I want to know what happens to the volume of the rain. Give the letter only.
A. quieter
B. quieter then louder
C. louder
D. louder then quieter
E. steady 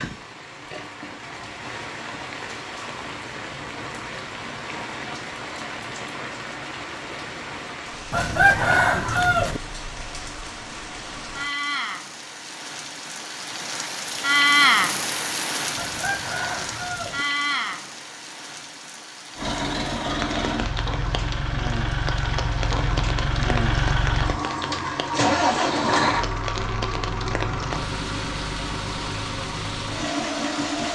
D.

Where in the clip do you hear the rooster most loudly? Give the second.
9 s.